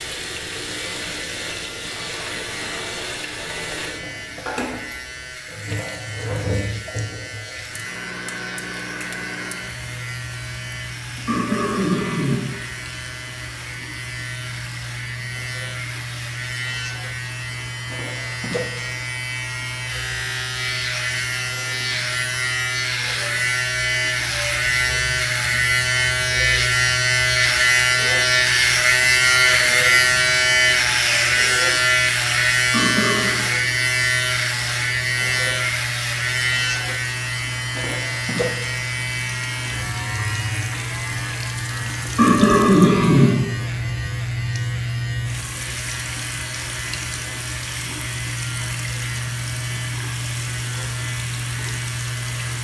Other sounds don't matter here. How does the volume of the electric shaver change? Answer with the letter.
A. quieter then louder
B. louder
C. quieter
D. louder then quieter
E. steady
D.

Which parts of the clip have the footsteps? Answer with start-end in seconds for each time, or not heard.
not heard.